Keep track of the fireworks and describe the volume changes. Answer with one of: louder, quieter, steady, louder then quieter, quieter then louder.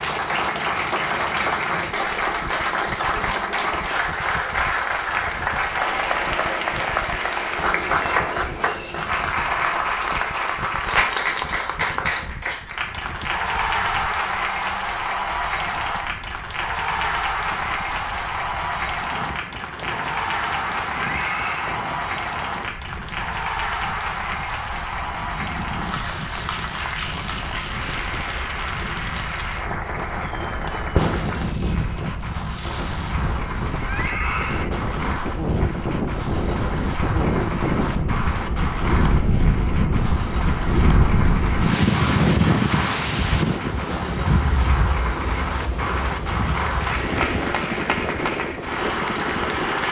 louder then quieter.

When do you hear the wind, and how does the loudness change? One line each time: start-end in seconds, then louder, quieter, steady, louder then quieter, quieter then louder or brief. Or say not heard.
0.0-49.8 louder.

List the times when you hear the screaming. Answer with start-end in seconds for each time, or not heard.
21.0-21.8, 33.9-34.7.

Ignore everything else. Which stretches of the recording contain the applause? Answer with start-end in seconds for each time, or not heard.
0.0-49.8.